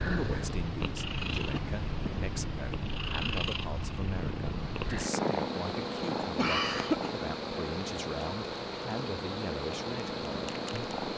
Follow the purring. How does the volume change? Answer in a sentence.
The loudness of the purring goes down.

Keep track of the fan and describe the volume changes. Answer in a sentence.
The volume of the fan stays about the same.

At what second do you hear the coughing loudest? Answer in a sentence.
The loudest moment of the coughing is at 7 seconds.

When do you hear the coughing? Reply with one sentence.
The coughing can be heard from 1.5 to 2.2 s and from 6.3 to 7.1 s.